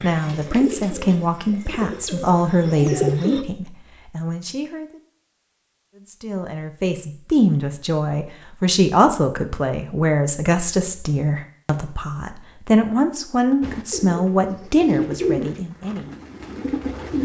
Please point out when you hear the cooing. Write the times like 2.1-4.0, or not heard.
0.0-3.5, 13.6-17.1.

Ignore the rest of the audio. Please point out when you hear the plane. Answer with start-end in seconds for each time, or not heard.
not heard.